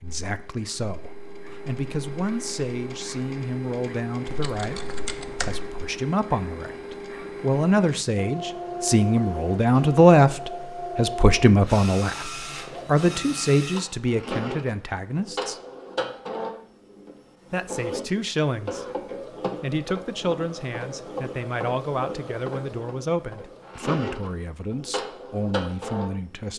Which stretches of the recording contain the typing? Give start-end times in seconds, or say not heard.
4.2-5.7.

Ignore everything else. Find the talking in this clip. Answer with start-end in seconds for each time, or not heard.
0.0-15.6, 17.5-18.9, 19.6-26.5.